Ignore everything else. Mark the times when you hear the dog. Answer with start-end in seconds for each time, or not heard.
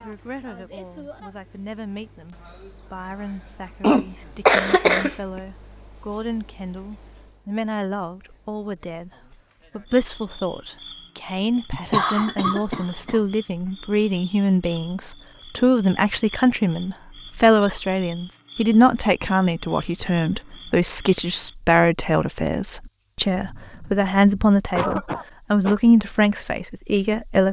not heard.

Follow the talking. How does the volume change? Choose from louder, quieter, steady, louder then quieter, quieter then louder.
louder.